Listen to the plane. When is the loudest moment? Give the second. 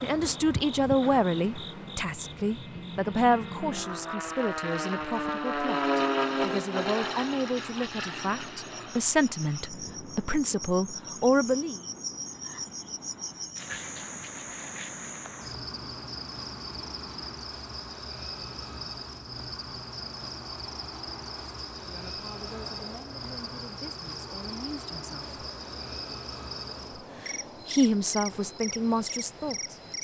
6 s.